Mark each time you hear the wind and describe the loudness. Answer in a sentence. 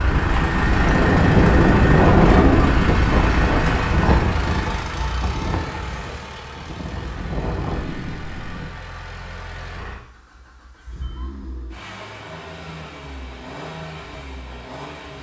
You can hear the wind from 0.0 to 8.7 s, getting quieter.